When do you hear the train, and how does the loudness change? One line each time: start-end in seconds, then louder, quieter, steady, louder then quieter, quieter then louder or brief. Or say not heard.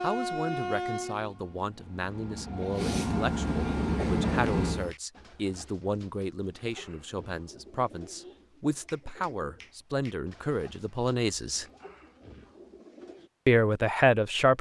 0.0-5.0 quieter then louder.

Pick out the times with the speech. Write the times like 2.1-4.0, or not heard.
0.0-11.7, 13.4-14.5.